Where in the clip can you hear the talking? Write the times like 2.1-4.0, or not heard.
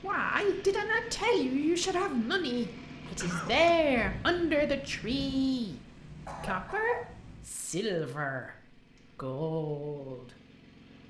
0.0-5.8, 6.4-8.6, 9.2-10.3.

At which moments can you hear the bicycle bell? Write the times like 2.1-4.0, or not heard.
not heard.